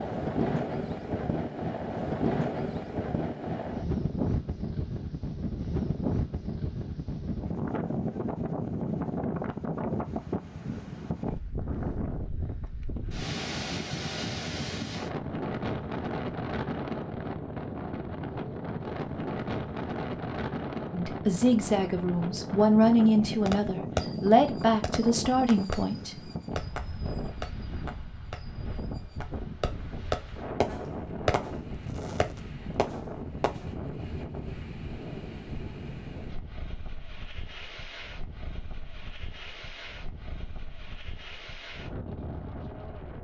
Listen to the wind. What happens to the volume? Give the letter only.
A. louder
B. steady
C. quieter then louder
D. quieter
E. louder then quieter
D.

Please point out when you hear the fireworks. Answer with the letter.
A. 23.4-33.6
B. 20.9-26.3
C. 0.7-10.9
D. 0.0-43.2
A.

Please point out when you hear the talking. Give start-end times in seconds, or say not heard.
20.9-26.3.